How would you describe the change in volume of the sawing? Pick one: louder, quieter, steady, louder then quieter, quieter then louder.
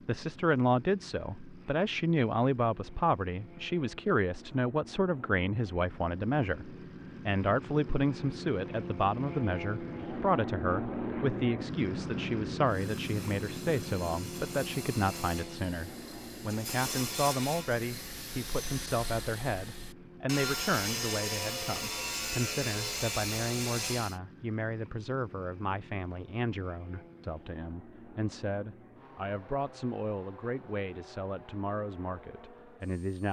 louder.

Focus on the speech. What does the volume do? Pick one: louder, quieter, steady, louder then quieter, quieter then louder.
quieter.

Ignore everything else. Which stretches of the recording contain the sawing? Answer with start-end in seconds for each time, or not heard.
12.7-24.2.